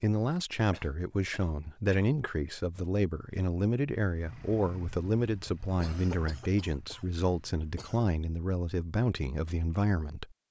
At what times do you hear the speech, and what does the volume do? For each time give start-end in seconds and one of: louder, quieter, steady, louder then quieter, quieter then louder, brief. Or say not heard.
0.0-10.3 steady.